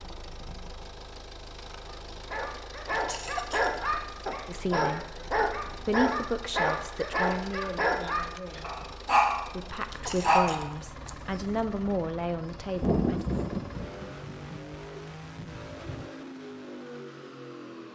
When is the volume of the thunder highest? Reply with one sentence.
The volume of the thunder peaks at 13 seconds.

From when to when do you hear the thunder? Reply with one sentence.
The thunder can be heard from 12.8 to 16.1 s.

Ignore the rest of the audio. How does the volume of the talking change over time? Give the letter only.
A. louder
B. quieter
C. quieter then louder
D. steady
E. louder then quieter
C.